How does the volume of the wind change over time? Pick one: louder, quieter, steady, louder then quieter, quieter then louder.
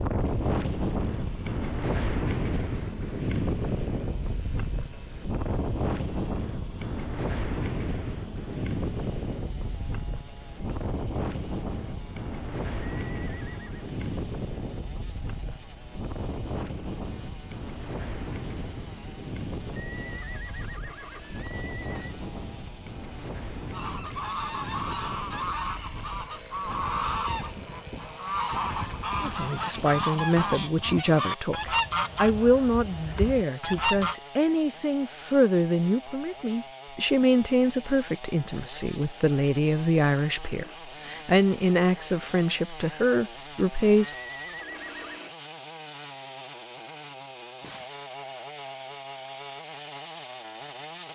quieter.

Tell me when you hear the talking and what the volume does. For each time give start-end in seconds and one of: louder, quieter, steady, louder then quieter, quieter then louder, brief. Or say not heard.
29.2-44.1 steady.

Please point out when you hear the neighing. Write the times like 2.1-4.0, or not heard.
13.1-13.9, 19.8-22.1, 44.0-45.2.